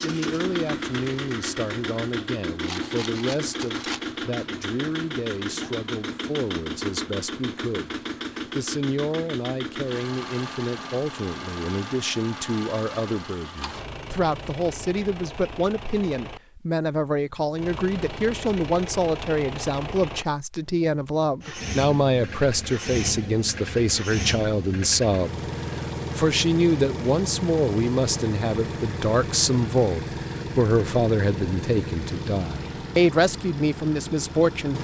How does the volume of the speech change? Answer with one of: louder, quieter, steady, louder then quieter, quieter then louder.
louder.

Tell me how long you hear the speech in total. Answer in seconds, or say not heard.
35 s.